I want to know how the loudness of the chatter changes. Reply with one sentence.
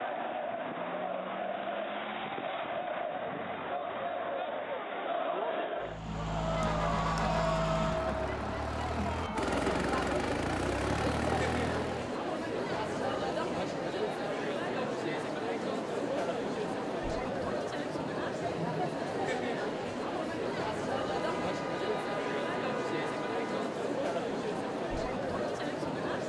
The volume of the chatter stays about the same.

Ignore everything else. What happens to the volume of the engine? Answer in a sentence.
The volume of the engine stays about the same.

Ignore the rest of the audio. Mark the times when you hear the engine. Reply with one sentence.
You can hear the engine from 5.8 to 12.2 s.